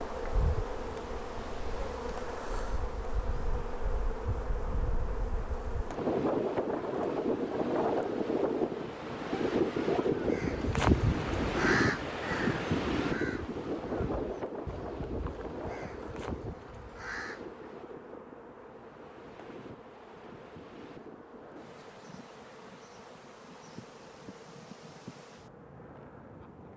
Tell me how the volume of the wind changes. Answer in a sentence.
The volume of the wind goes up, then down.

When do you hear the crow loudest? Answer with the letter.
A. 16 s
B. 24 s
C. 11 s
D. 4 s
C.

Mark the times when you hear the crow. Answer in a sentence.
The crow can be heard from 10.2 to 17.6 s.